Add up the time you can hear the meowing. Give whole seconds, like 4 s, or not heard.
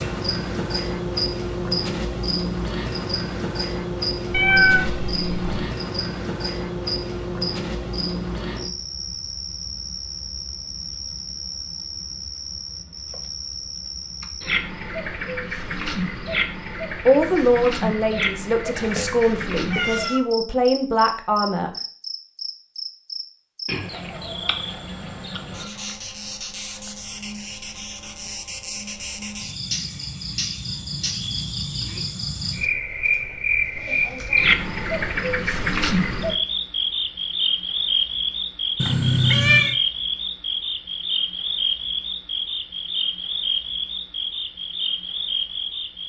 4 s.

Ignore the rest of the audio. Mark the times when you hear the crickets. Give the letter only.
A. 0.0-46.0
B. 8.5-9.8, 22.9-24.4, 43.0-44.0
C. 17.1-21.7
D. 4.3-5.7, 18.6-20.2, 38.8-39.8
A.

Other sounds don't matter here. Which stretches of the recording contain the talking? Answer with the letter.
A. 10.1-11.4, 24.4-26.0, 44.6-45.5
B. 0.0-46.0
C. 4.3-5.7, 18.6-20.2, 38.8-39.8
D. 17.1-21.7
D.